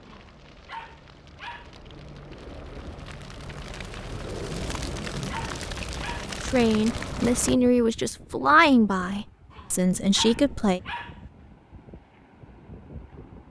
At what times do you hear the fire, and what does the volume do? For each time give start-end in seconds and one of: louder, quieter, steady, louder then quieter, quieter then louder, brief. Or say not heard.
0.0-7.5 louder.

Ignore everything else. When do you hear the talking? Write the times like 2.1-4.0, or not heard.
6.4-10.8.